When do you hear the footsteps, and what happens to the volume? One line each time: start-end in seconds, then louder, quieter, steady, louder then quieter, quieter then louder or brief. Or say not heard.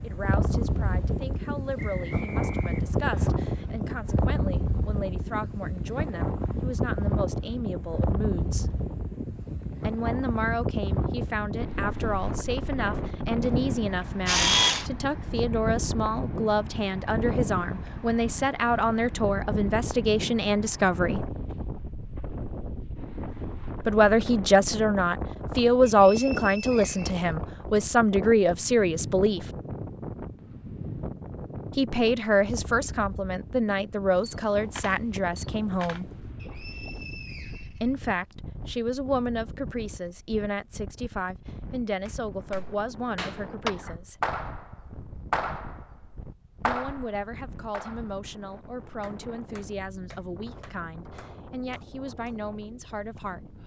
not heard.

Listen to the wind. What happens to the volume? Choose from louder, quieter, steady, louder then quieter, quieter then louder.
quieter.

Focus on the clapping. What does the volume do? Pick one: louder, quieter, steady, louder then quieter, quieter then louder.
quieter.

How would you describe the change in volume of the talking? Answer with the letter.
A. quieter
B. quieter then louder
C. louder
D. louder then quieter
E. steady
D.